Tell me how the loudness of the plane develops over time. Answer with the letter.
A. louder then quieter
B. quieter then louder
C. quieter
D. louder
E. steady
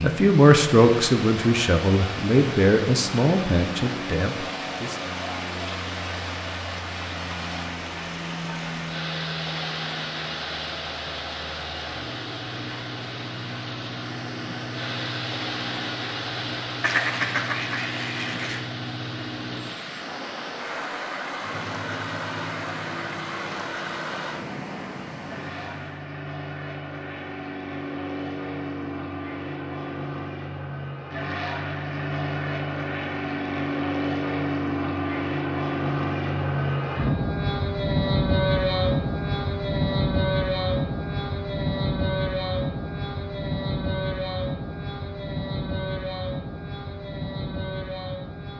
D.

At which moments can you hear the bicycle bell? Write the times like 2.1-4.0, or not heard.
not heard.